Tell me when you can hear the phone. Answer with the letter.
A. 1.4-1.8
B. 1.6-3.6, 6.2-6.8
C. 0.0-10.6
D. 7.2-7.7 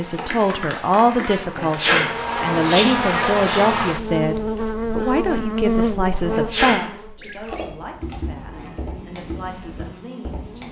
D.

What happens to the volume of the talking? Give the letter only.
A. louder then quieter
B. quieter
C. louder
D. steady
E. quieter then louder
B.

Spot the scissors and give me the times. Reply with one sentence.
The scissors can't be heard in this clip.